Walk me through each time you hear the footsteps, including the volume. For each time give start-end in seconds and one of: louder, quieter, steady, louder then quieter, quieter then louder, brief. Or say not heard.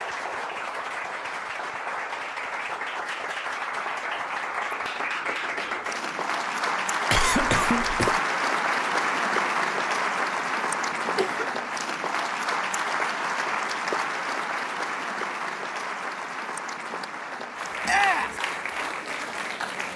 not heard.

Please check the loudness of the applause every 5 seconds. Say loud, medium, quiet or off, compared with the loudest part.
medium, loud, loud, medium.